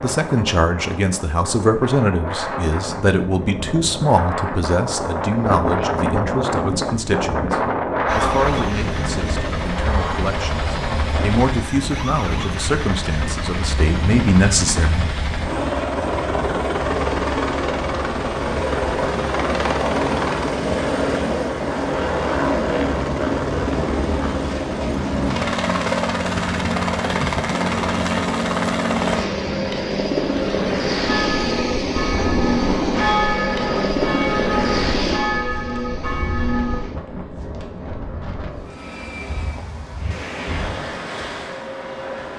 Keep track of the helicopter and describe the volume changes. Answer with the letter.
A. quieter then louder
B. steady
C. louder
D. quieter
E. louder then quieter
E.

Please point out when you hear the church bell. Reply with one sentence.
You can hear the church bell from 31.1 to 36.9 s.